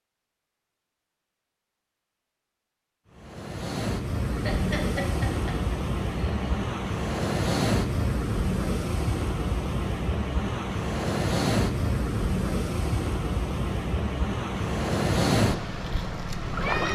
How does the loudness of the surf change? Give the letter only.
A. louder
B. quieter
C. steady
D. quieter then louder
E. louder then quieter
C.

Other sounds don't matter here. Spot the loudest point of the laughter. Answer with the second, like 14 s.
5 s.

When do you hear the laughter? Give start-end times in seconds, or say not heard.
4.3-6.5.